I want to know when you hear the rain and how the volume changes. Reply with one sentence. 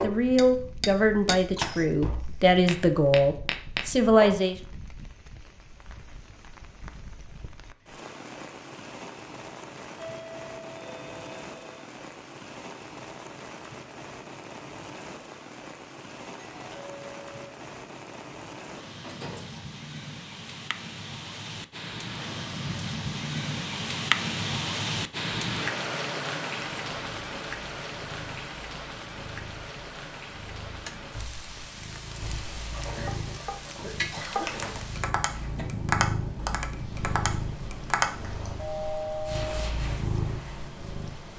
You can hear the rain from 0.0 to 41.3 s, getting louder then quieter.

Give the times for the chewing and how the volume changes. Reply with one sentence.
You can't hear the chewing here.